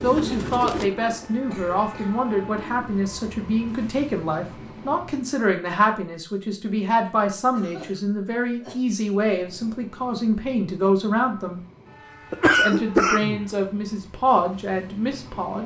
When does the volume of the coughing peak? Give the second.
13 s.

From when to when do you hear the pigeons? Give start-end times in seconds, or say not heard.
0.0-3.0.